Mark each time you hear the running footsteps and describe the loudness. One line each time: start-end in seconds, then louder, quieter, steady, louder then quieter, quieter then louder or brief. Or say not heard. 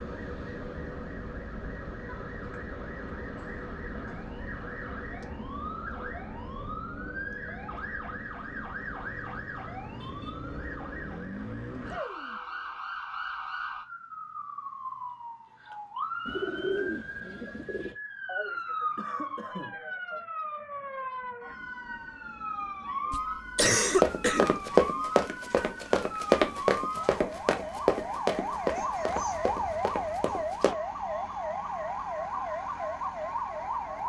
23.9-30.8 quieter.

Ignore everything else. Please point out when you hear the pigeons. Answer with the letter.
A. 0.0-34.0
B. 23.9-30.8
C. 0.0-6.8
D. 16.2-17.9
D.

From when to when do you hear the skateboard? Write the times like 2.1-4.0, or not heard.
not heard.